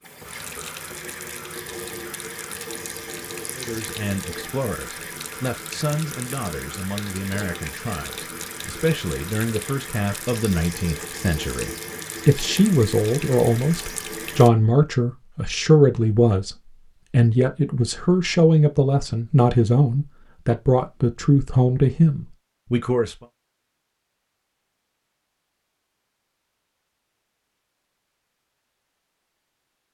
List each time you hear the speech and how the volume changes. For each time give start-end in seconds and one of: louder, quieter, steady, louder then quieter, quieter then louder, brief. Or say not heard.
3.5-23.1 louder.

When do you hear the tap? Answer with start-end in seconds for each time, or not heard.
0.0-14.5.